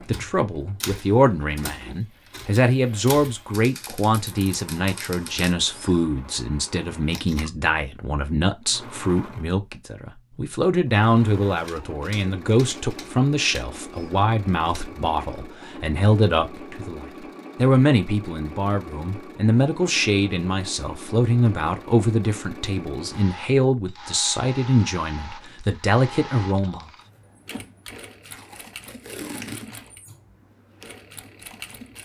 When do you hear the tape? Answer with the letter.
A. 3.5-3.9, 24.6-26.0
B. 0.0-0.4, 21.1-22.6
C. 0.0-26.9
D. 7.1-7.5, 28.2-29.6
D.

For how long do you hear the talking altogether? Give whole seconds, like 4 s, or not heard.
27 s.